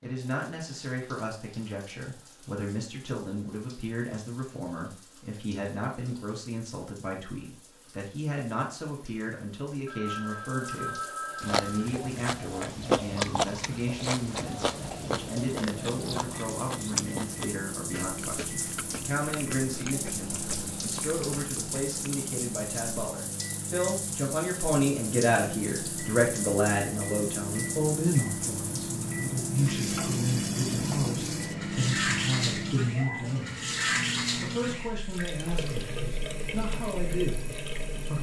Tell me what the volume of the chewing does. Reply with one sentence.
The volume of the chewing goes down.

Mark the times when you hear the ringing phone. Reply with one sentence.
The ringing phone can be heard from 9.8 to 11.8 s.